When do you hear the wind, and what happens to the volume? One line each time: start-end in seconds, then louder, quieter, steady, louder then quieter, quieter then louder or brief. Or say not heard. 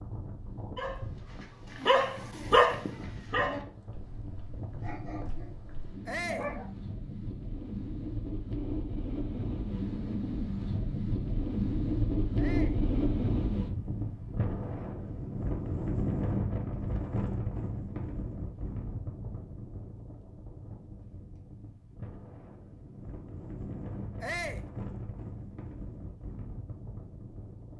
0.0-27.7 louder then quieter.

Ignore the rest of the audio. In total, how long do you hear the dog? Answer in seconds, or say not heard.
6 s.